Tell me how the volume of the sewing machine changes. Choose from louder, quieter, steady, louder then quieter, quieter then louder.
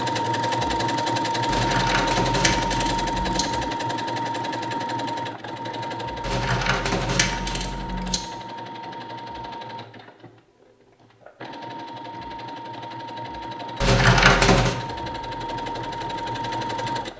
quieter then louder.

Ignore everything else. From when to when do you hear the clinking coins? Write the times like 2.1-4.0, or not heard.
1.4-3.5, 6.2-8.2, 13.8-14.8.